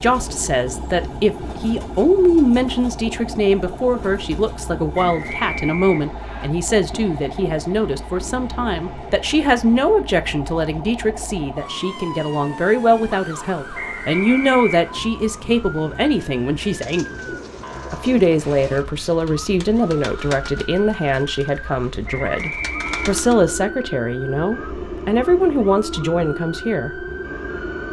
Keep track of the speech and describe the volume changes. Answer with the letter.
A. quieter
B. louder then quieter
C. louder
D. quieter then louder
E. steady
E.